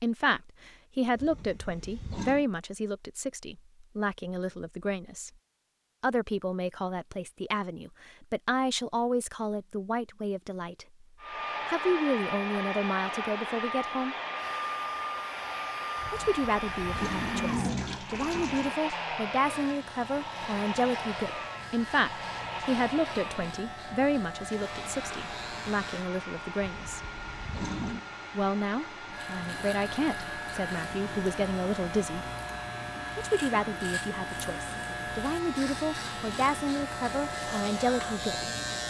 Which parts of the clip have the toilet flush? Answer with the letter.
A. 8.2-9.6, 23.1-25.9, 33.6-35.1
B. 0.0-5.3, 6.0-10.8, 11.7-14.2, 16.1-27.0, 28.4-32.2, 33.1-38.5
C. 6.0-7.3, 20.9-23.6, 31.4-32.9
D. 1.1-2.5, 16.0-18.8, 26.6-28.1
D.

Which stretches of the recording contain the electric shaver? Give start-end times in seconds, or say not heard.
14.3-26.1, 29.1-38.8.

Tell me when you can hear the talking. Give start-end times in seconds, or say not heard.
0.0-5.3, 6.0-10.8, 11.7-14.2, 16.1-27.0, 28.4-32.2, 33.1-38.5.